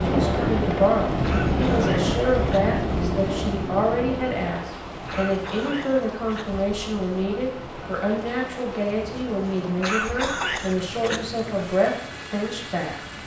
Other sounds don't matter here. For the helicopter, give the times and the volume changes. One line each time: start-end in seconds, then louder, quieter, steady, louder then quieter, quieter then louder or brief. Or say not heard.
0.0-13.2 quieter.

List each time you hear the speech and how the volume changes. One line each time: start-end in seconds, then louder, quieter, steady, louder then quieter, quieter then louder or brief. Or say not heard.
0.0-13.2 steady.